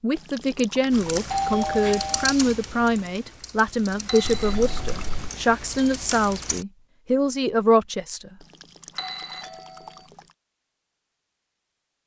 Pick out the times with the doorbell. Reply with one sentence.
The doorbell can be heard from 1.2 to 2.4 s, from 4.0 to 5.0 s and from 8.9 to 10.1 s.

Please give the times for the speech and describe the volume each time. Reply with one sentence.
The speech can be heard from 0.0 to 8.3 s, at a steady volume.